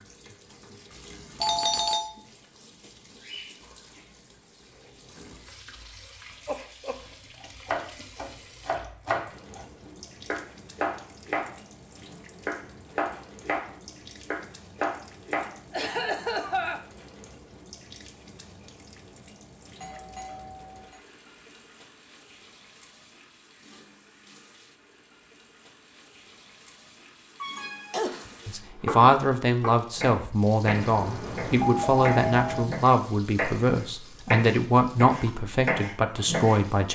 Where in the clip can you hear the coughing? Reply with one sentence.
The coughing can be heard from 6.5 to 7.0 s, from 15.7 to 16.8 s and from 27.4 to 28.4 s.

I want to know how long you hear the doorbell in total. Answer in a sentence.
The doorbell can be heard for 4 seconds in total.